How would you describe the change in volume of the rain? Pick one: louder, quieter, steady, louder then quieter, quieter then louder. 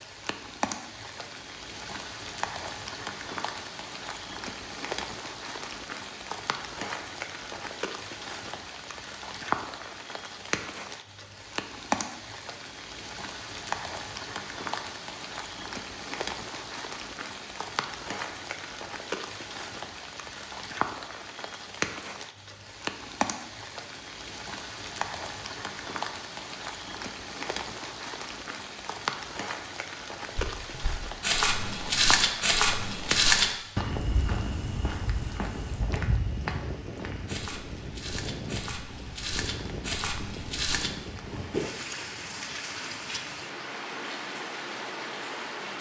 steady.